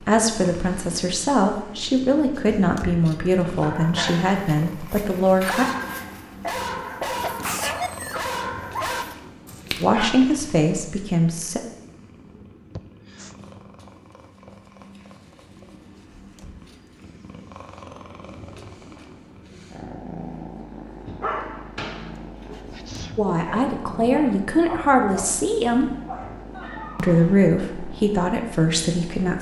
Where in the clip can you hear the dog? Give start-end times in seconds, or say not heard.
3.6-10.1, 21.1-27.4.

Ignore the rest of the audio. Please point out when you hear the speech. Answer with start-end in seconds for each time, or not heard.
0.0-5.7, 9.8-11.6, 23.1-25.9, 26.9-29.3.